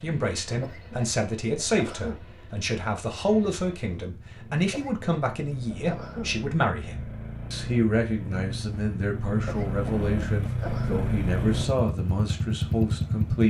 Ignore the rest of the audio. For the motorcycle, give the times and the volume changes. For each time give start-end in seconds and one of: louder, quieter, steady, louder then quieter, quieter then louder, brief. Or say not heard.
0.0-13.4 louder.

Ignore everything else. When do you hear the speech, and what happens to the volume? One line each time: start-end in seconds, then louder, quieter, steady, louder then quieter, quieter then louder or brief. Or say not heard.
0.0-13.4 steady.